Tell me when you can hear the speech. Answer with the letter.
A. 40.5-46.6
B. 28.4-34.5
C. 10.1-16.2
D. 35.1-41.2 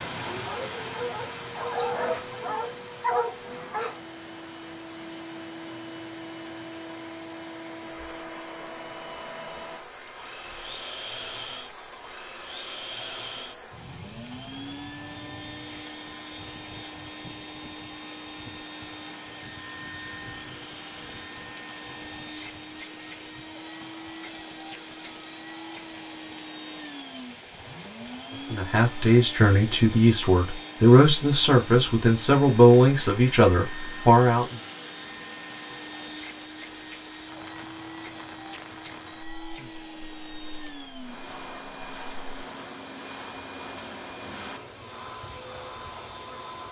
B.